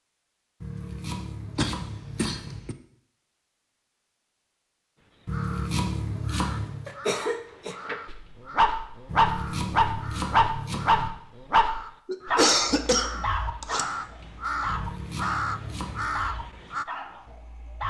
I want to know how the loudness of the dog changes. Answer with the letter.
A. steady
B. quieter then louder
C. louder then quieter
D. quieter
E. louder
D.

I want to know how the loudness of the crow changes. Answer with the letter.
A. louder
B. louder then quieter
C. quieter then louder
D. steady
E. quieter
A.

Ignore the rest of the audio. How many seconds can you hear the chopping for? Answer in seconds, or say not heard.
7 s.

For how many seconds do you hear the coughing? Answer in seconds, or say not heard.
4 s.